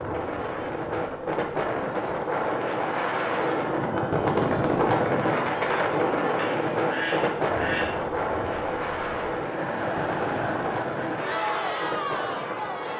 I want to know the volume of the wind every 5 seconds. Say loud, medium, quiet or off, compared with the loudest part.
loud, loud, medium.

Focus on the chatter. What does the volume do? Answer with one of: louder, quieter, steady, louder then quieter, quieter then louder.
louder.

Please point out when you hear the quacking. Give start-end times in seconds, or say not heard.
6.3-8.1.